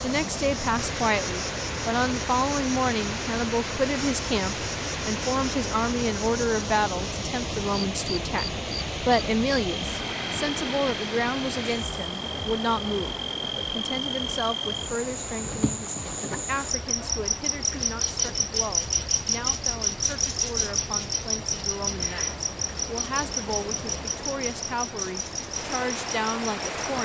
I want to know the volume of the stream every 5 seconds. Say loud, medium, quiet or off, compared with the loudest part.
loud, loud, loud, medium, medium, loud.